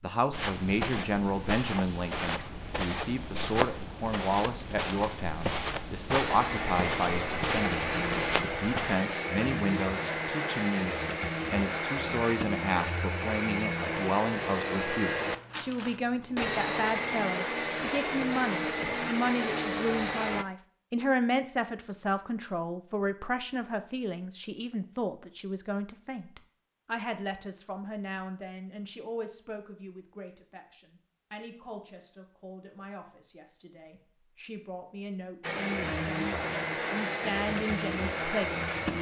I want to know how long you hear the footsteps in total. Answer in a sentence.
You can hear the footsteps for 9 seconds altogether.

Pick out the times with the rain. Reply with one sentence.
You can't hear the rain here.